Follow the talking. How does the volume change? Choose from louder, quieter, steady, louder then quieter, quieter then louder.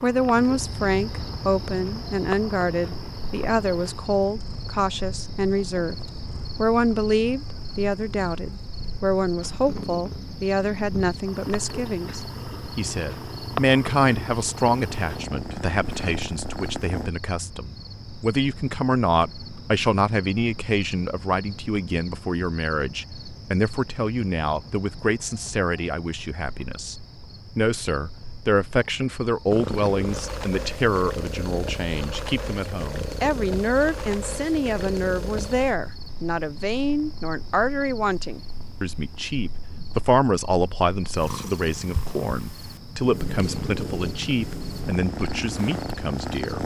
steady.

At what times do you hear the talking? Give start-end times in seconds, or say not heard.
0.0-6.0, 6.5-46.6.